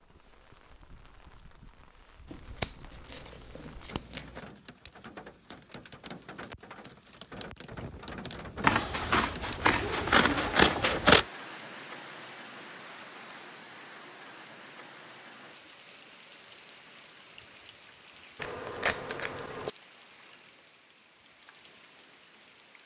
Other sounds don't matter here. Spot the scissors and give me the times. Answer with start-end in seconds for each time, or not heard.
2.2-4.4, 8.6-11.2, 18.4-19.7.